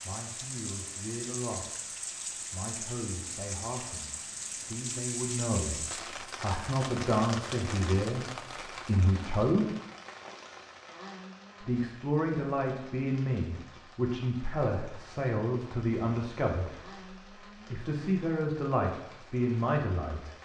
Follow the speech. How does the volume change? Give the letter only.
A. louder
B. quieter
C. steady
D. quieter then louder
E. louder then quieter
A.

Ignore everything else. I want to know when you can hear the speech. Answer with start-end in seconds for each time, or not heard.
0.0-9.7, 11.6-20.4.